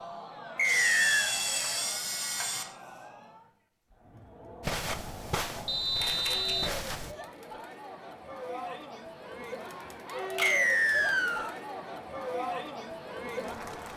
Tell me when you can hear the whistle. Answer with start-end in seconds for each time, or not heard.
0.6-1.4, 5.7-6.7, 10.4-11.6.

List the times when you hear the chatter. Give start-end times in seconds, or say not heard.
0.0-13.9.